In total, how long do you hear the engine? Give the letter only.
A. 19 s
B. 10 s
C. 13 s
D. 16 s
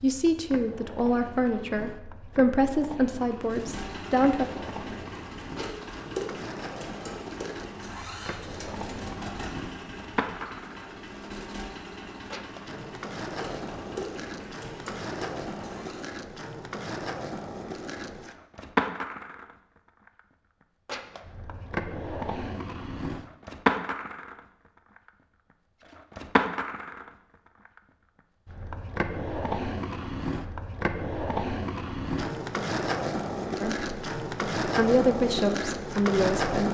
C.